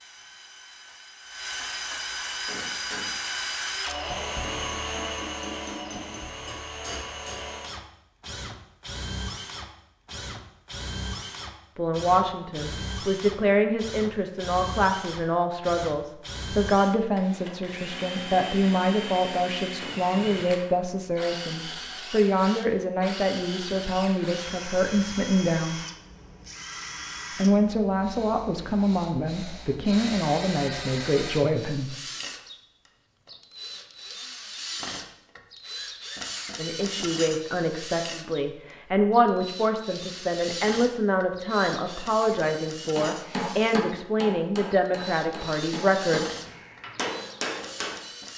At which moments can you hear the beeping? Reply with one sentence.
The beeping can't be heard in this clip.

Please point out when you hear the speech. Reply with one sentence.
The speech can be heard from 11.8 to 25.8 s, from 27.4 to 31.9 s and from 36.5 to 46.2 s.